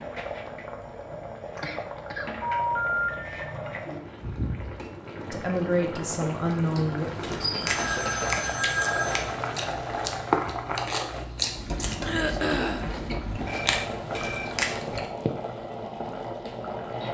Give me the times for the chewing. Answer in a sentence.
You can hear the chewing from 7.0 to 15.1 s.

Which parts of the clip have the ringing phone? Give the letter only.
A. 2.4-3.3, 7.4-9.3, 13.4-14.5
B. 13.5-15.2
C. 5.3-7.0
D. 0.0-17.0
A.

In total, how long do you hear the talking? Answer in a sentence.
The talking can be heard for 2 seconds in total.